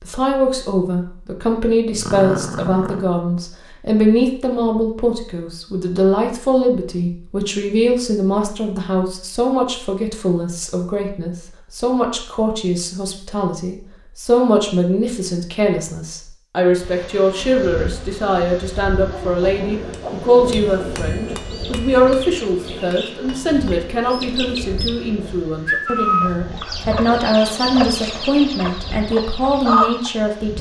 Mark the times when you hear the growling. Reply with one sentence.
The growling can be heard from 1.9 to 3.1 s and from 26.2 to 27.3 s.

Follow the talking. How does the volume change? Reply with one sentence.
The volume of the talking stays about the same.